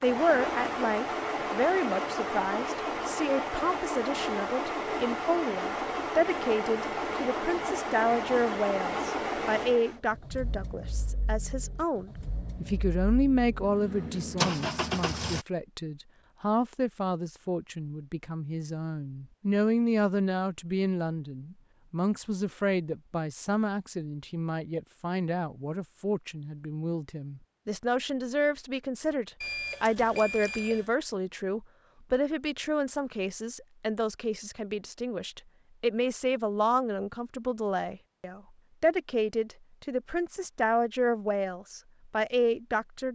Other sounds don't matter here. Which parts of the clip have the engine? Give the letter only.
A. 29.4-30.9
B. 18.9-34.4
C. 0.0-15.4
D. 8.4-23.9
C.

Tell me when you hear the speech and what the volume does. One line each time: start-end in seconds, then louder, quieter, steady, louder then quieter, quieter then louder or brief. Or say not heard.
0.0-43.1 steady.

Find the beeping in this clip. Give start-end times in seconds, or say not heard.
29.4-30.9.